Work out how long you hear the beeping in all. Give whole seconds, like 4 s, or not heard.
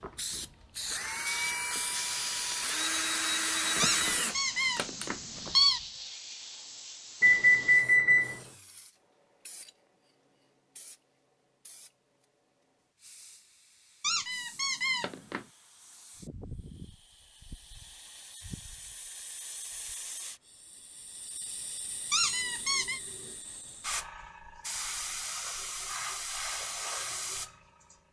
2 s.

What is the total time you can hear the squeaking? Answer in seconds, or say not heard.
4 s.